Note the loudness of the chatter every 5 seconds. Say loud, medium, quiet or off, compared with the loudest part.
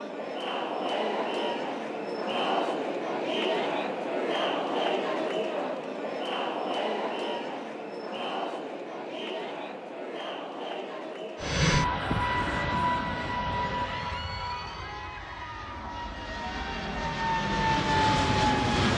loud, loud, medium, quiet.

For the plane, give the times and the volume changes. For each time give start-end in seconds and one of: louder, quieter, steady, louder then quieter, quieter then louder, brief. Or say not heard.
11.4-18.9 quieter then louder.